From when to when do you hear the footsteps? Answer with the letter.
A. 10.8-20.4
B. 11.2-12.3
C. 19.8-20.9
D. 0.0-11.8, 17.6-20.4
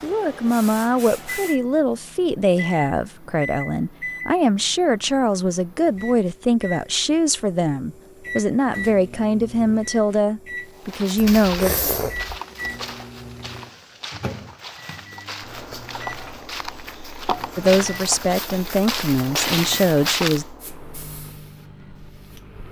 A.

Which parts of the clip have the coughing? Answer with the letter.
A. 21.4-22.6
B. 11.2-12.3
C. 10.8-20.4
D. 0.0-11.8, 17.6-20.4
B.